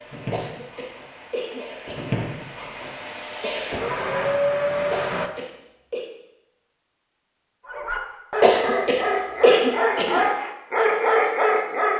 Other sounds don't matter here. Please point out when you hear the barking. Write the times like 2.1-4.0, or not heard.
7.7-11.9.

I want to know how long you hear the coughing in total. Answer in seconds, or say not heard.
5 s.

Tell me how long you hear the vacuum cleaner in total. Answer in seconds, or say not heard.
5 s.